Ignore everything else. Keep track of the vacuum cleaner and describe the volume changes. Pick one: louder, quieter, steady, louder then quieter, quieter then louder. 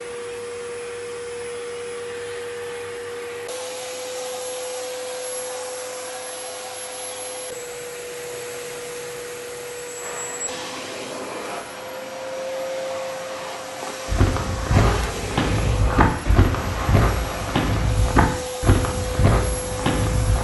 steady.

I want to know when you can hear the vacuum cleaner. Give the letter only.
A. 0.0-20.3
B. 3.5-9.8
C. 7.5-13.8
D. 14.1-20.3
A.